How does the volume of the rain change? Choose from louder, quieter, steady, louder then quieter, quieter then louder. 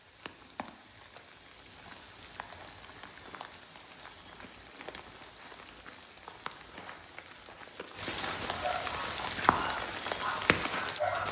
louder.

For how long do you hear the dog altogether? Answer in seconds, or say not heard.
3 s.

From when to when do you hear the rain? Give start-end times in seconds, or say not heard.
0.0-11.2.